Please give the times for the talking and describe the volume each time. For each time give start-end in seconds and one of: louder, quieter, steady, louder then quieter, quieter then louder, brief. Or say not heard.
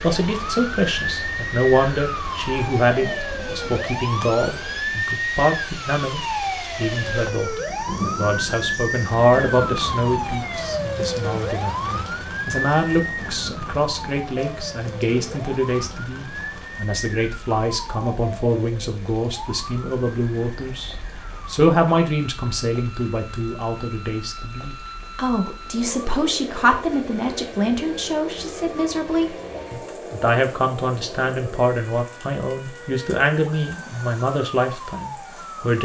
0.0-35.8 steady.